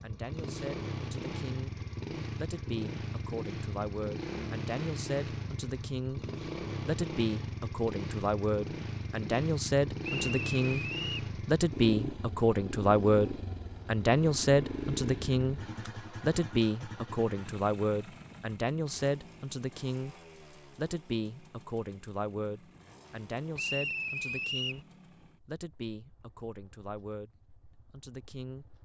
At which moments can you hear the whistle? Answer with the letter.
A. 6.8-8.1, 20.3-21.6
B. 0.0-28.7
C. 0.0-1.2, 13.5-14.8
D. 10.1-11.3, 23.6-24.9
D.